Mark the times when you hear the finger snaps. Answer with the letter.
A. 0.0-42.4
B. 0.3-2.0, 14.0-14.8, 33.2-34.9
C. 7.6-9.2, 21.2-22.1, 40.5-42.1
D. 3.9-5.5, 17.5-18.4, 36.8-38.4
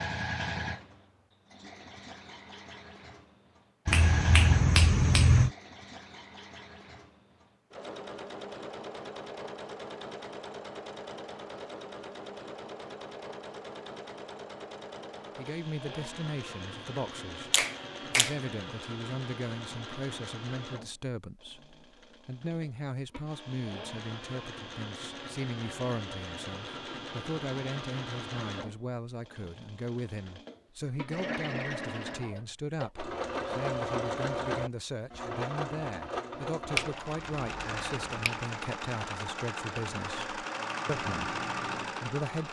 D.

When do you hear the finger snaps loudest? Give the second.
5 s.